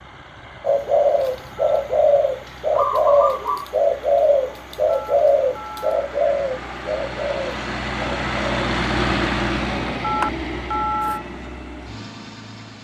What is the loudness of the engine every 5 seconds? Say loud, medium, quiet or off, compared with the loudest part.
quiet, loud, medium.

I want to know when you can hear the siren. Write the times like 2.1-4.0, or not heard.
not heard.